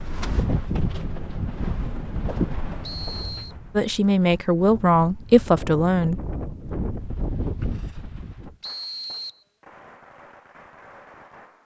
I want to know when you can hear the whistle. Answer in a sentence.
The whistle can be heard from 2.8 to 3.5 s and from 8.6 to 9.4 s.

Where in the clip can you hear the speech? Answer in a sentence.
The speech can be heard from 3.8 to 6.3 s.